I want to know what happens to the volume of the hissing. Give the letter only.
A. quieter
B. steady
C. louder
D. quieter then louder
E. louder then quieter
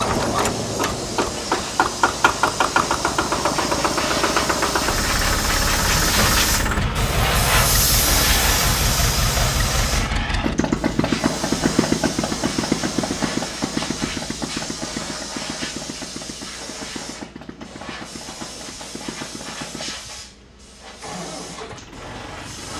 E.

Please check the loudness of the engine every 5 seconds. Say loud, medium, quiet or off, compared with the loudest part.
loud, loud, loud, quiet, quiet.